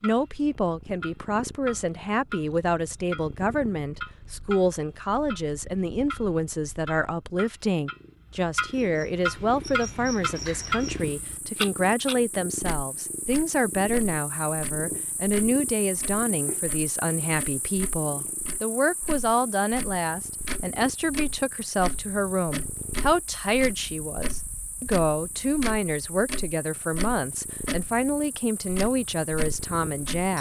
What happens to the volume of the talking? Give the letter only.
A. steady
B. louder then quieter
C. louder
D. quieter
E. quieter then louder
A.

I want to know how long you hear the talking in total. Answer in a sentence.
You can hear the talking for 30 seconds altogether.